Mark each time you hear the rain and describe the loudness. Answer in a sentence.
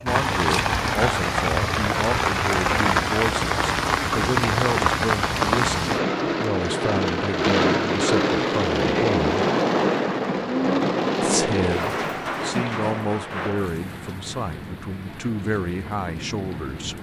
You can hear the rain from 0.0 to 16.9 s, getting quieter.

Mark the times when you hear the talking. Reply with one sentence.
The talking can be heard from 0.0 to 9.4 s and from 11.2 to 16.9 s.